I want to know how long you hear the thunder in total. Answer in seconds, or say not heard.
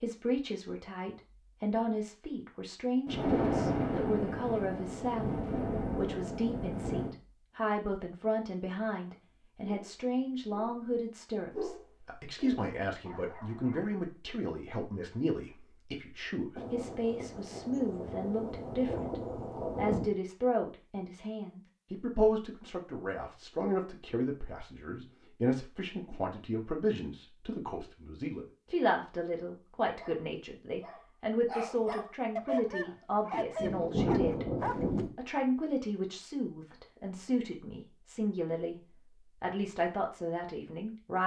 9 s.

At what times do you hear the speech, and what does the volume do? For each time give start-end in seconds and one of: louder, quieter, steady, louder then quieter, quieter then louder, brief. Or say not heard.
0.0-41.2 steady.